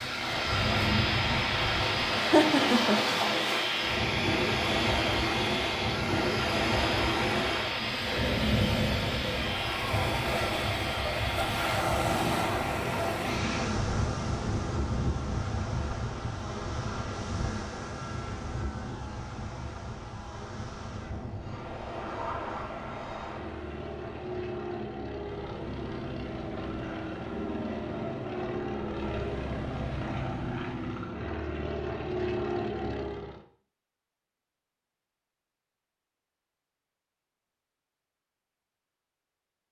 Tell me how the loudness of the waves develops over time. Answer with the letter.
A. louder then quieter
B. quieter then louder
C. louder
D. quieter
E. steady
D.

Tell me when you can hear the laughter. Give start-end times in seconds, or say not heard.
2.1-3.0.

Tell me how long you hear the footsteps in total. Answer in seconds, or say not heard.
not heard.